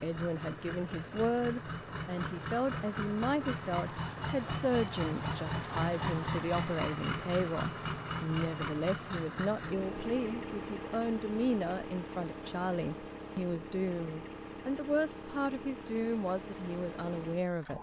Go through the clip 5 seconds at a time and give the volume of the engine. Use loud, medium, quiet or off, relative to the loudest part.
loud, loud, medium, medium.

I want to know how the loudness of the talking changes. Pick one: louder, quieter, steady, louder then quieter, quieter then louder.
steady.